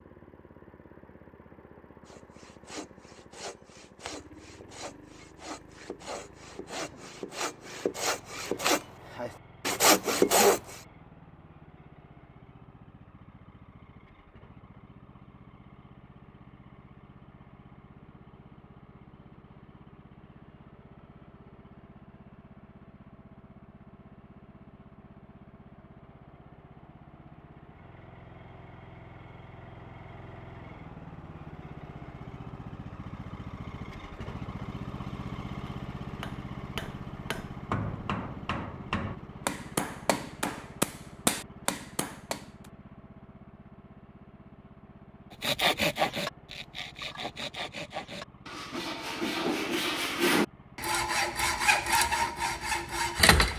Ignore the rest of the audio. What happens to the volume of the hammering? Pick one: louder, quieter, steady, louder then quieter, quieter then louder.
louder.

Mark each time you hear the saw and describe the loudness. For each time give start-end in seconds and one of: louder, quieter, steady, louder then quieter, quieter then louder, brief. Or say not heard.
2.0-10.8 louder
45.4-53.5 quieter then louder.